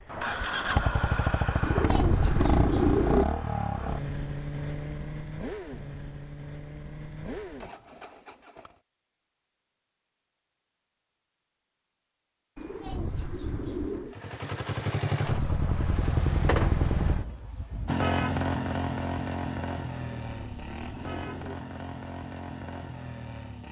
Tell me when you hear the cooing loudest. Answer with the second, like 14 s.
3 s.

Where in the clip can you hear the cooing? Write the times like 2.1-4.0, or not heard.
1.6-3.2, 12.6-14.2, 20.1-21.6.